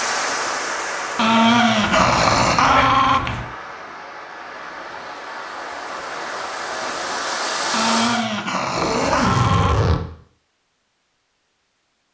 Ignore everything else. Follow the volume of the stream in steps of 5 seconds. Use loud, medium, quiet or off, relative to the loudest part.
loud, loud, off.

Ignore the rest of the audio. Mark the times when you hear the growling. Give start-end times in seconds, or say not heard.
1.1-3.2, 7.7-9.8.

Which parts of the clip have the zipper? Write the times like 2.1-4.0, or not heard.
1.8-3.5, 8.8-10.1.